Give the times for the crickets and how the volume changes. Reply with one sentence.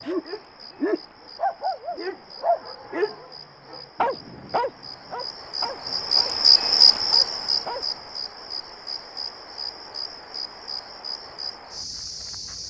The crickets can be heard from 0.0 to 12.6 s, getting louder then quieter.